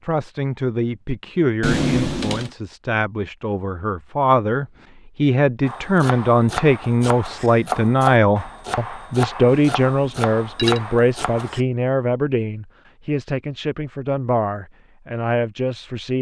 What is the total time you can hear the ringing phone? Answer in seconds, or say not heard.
2 s.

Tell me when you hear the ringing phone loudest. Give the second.
2 s.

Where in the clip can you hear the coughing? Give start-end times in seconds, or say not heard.
not heard.